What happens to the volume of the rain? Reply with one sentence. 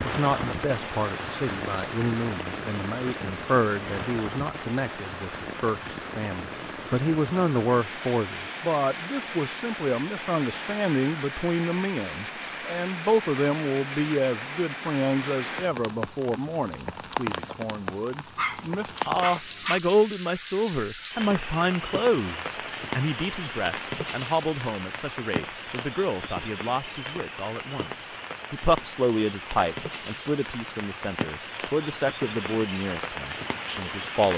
The volume of the rain stays about the same.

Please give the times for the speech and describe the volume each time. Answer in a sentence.
You can hear the speech from 0.0 to 34.3 s, at a steady volume.